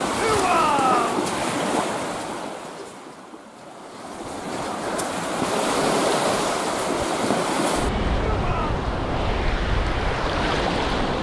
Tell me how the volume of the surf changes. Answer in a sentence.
The volume of the surf goes down, then up.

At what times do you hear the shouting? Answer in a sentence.
You can hear the shouting from 0.1 to 1.2 s and from 8.3 to 8.8 s.